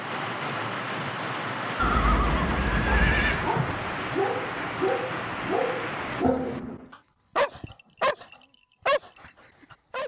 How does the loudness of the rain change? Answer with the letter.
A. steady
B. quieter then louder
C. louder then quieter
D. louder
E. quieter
A.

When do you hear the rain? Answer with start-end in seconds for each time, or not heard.
0.0-6.2.